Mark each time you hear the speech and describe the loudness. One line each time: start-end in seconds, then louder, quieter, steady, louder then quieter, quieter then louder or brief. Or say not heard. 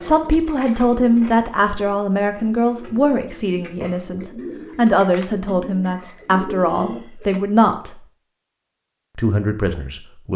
0.0-8.0 quieter then louder
9.2-10.3 brief.